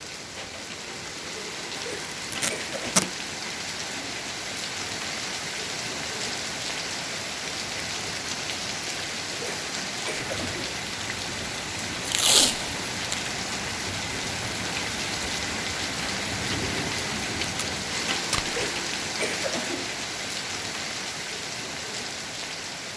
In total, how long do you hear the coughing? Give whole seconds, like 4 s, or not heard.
4 s.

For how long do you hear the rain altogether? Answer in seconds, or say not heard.
23 s.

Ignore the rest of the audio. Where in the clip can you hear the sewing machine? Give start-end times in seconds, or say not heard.
not heard.